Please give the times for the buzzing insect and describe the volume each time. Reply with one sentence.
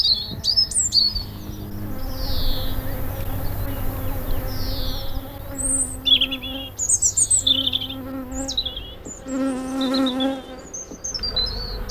The buzzing insect can be heard from 0.0 to 11.8 s, getting louder.